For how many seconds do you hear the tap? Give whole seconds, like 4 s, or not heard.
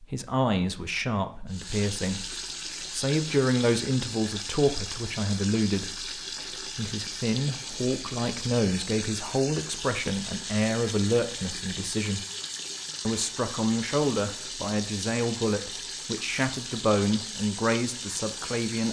17 s.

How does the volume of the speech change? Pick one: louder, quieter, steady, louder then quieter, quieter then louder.
steady.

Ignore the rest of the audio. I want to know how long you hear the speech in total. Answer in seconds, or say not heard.
18 s.